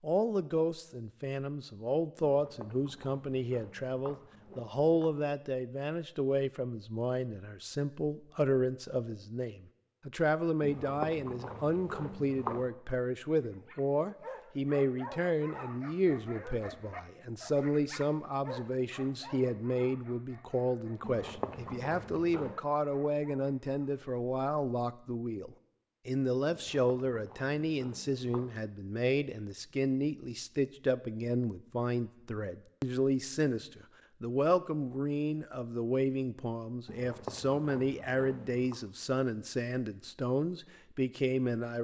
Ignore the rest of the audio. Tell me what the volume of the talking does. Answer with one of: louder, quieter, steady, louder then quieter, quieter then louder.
steady.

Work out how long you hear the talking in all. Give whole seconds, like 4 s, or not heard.
42 s.